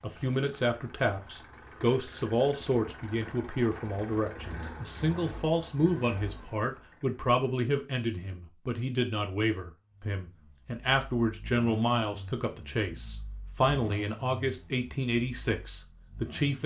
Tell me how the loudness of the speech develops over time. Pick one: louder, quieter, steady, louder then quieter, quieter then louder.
steady.